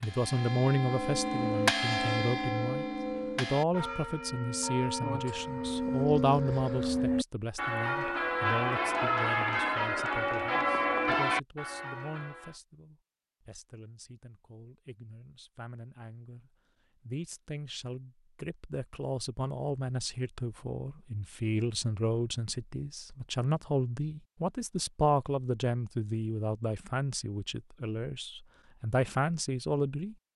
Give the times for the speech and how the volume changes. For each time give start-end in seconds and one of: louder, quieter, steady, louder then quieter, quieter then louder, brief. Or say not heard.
0.0-30.1 quieter then louder.